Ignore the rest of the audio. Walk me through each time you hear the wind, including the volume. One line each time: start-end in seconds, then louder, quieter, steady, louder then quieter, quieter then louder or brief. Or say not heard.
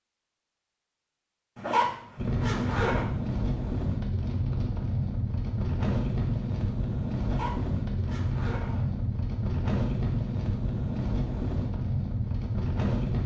2.1-13.2 steady.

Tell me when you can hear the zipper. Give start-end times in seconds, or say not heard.
1.6-3.0, 7.2-8.8.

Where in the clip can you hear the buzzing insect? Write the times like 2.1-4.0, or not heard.
not heard.